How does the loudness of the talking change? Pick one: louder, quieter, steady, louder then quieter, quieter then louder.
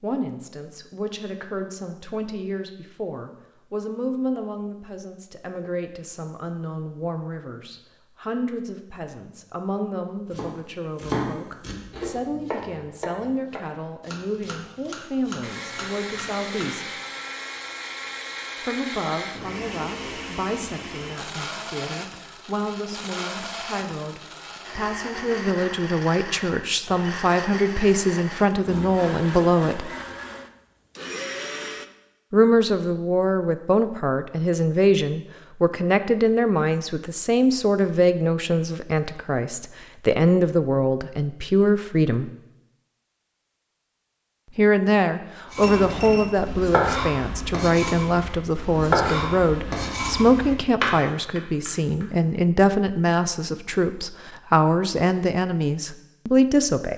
louder.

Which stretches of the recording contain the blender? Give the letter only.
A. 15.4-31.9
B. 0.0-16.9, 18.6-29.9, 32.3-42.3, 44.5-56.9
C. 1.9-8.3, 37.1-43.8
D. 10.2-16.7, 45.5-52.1
A.